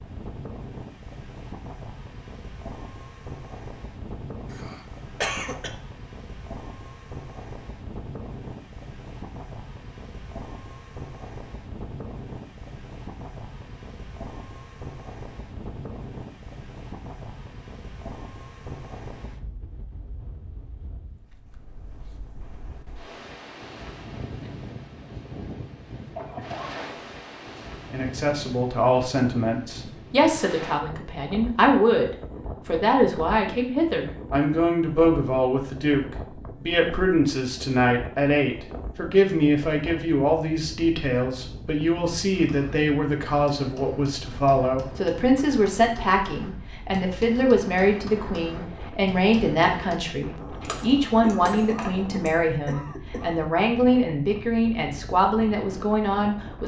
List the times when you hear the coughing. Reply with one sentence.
You can hear the coughing from 4.5 to 5.7 s, from 26.1 to 26.9 s and from 51.2 to 53.5 s.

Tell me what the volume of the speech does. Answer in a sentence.
The loudness of the speech stays about the same.